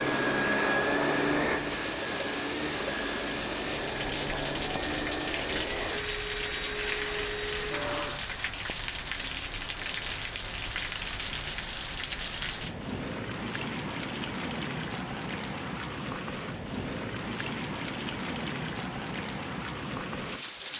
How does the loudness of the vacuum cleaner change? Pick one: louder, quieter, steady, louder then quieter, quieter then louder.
quieter.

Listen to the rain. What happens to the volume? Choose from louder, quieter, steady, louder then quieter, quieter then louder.
steady.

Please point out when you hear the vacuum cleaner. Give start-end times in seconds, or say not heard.
0.0-8.2.